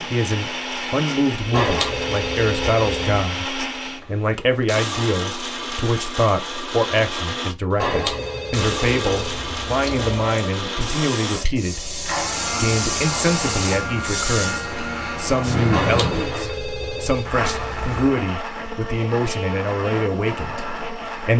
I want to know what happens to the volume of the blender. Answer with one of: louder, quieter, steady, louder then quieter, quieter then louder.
steady.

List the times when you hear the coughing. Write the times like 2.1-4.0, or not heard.
not heard.